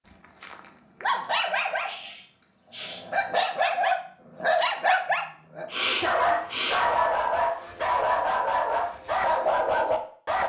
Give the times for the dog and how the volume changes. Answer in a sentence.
You can hear the dog briefly from 0.4 to 2.1 s; and from 2.7 to 10.4 s, at a steady volume.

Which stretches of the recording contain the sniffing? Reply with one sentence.
The sniffing can be heard from 1.8 to 3.0 s and from 5.7 to 6.8 s.